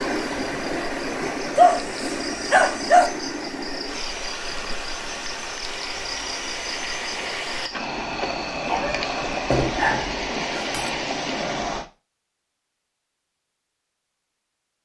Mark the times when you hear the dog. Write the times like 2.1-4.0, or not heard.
1.6-3.1, 8.7-10.9.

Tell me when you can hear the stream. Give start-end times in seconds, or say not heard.
0.0-11.8.